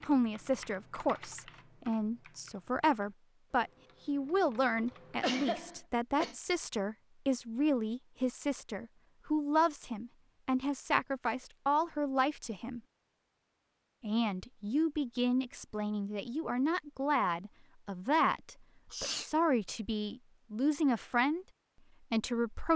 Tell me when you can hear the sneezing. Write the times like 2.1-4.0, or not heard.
5.2-6.3, 18.9-19.3.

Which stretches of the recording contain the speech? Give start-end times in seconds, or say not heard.
0.1-12.8, 14.0-21.4, 22.1-22.7.